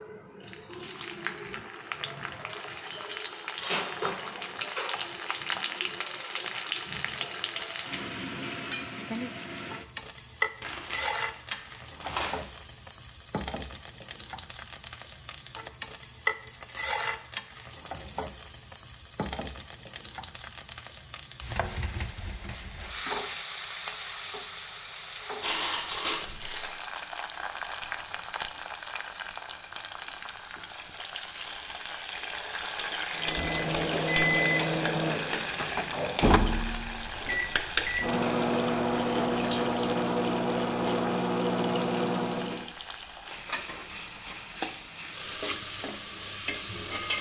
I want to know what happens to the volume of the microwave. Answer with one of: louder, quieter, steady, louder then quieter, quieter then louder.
steady.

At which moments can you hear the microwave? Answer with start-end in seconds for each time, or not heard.
33.1-42.7.